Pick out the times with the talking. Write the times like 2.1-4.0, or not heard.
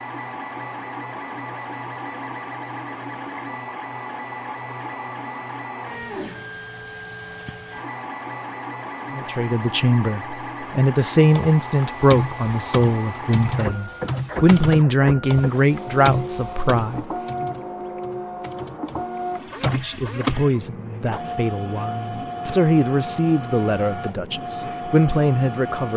9.1-17.5, 19.5-25.9.